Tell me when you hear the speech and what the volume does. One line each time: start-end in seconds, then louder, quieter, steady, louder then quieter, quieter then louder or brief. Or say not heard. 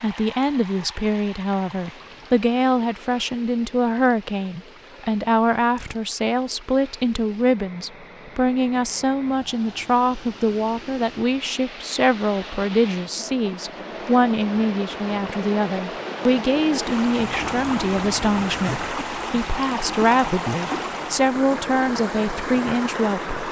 0.0-23.4 steady.